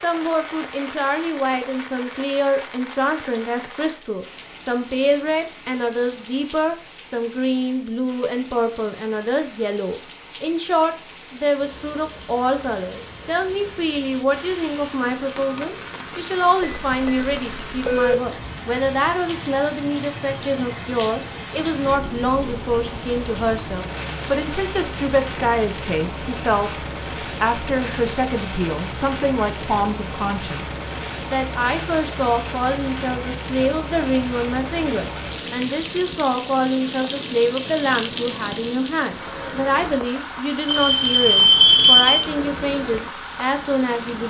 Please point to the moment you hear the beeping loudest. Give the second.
42 s.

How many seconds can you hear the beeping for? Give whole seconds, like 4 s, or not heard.
3 s.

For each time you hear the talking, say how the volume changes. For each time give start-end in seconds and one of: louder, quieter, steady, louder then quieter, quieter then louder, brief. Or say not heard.
0.0-44.2 steady.